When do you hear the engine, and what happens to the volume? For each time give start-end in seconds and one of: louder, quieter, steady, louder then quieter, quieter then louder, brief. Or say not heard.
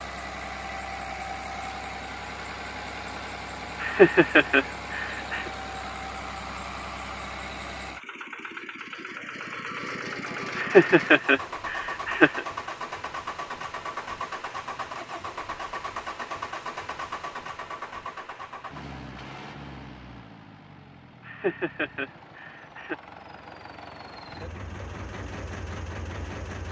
0.0-26.6 quieter.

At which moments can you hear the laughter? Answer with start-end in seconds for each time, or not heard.
3.8-5.5, 10.6-12.4, 21.2-22.9.